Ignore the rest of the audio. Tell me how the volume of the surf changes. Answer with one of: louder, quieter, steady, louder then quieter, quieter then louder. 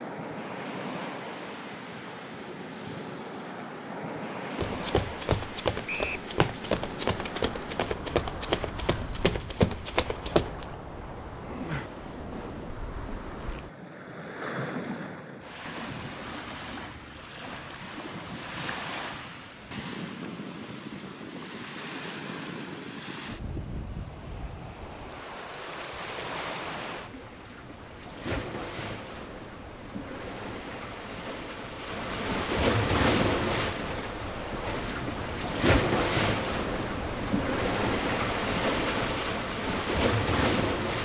louder.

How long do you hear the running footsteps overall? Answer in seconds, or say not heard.
6 s.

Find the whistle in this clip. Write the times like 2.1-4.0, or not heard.
5.8-6.3.